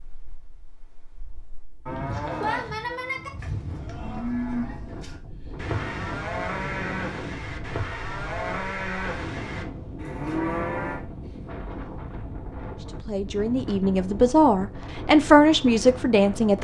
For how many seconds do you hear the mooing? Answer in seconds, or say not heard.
9 s.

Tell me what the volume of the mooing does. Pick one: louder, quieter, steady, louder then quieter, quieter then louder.
steady.